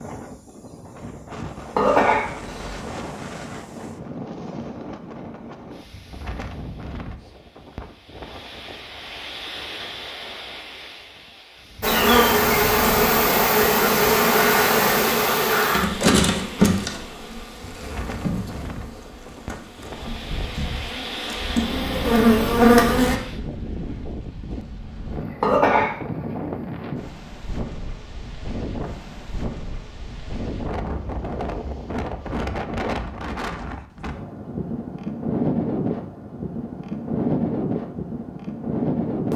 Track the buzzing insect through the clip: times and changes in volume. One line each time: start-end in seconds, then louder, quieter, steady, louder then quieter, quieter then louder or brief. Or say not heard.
11.8-23.2 quieter then louder.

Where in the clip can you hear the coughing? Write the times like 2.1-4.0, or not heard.
1.8-2.9, 25.4-26.0.